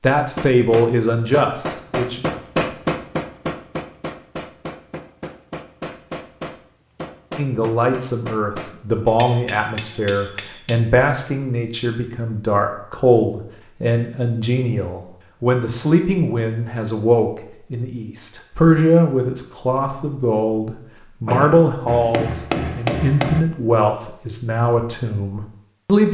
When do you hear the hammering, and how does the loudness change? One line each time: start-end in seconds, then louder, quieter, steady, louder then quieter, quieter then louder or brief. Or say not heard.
0.3-10.8 quieter
21.9-23.4 brief.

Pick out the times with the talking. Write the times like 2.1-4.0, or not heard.
0.0-2.4, 7.3-26.0.